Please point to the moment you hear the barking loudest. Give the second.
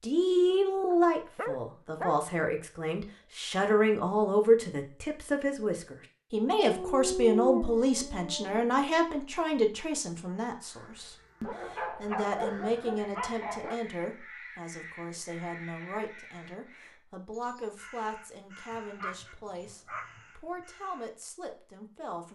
7 s.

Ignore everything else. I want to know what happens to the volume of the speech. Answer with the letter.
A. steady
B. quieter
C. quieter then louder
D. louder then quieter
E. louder
B.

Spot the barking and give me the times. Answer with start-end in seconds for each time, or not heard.
0.9-2.2, 6.5-8.7, 11.4-13.8, 18.7-20.2.